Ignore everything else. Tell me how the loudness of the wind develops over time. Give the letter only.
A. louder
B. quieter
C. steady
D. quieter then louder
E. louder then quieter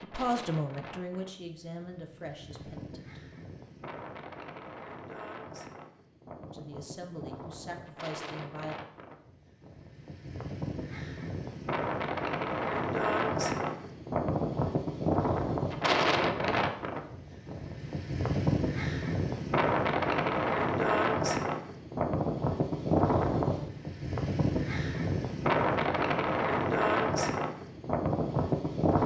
A.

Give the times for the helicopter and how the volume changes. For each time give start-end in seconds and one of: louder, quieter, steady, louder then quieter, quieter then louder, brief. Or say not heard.
not heard.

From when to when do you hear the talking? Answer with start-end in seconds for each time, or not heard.
0.0-3.2, 6.5-8.8.